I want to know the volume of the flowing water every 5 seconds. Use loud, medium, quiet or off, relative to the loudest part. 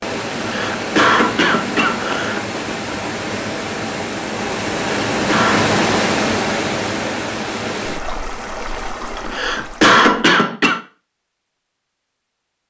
loud, loud, off.